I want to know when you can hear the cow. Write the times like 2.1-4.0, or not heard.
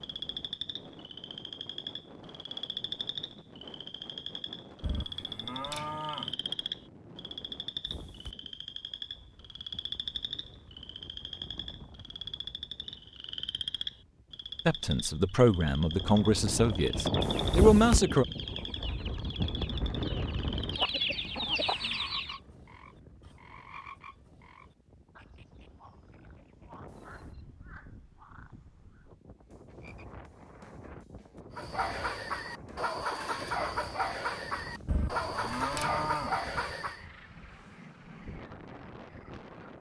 4.8-6.3, 34.9-36.4.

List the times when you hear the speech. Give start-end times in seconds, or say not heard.
14.7-18.2.